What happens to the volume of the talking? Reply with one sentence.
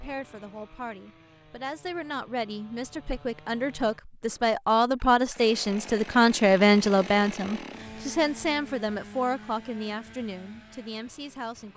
The volume of the talking goes up, then down.